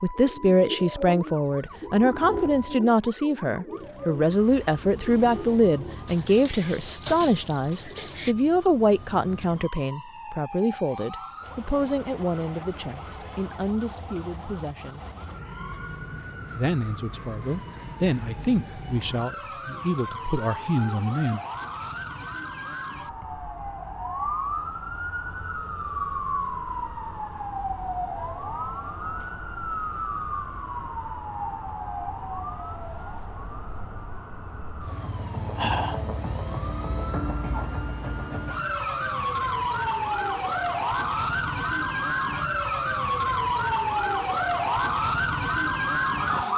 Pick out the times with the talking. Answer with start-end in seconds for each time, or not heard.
0.0-15.1, 16.6-21.4.